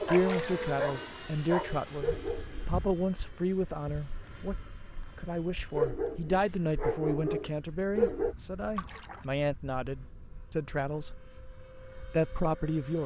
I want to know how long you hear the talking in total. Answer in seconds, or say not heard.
12 s.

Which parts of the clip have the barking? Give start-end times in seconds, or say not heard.
0.0-2.6, 5.8-8.3.